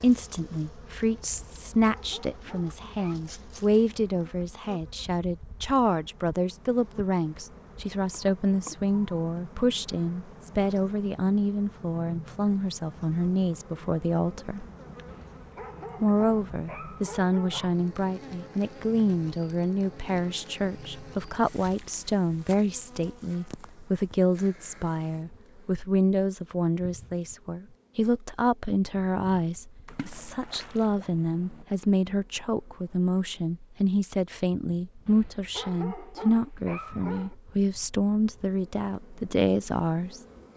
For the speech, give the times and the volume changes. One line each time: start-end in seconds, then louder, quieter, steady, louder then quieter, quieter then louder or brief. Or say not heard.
0.0-14.7 steady
16.0-40.2 steady.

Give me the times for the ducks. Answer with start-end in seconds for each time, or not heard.
not heard.